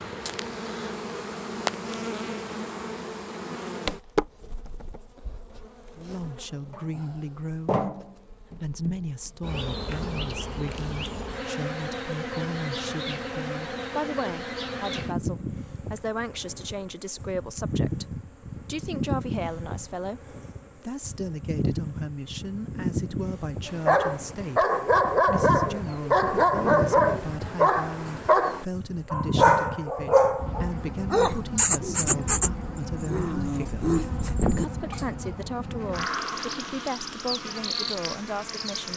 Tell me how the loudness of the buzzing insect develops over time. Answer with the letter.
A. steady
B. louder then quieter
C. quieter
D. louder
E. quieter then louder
A.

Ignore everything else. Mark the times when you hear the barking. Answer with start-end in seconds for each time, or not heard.
23.6-35.1.